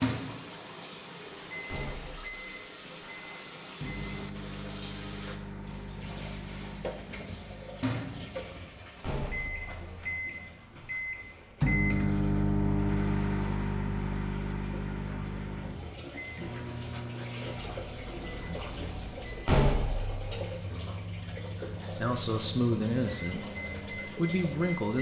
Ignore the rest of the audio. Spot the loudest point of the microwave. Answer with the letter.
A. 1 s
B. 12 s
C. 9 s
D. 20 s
B.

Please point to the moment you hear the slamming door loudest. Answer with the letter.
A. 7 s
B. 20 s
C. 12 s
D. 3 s
B.